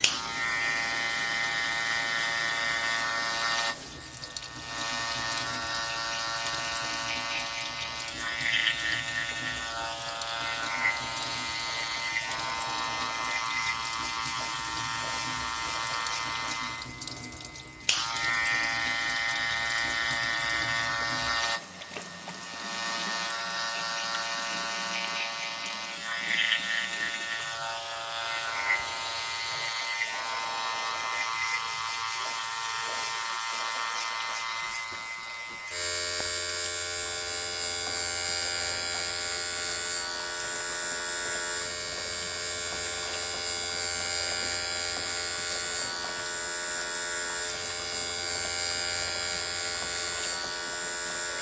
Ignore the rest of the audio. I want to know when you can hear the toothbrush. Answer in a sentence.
The toothbrush can't be heard in this clip.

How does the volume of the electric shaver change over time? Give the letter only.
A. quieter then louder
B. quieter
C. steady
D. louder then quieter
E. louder
C.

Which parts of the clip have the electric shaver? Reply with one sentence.
The electric shaver can be heard from 0.0 to 51.3 s.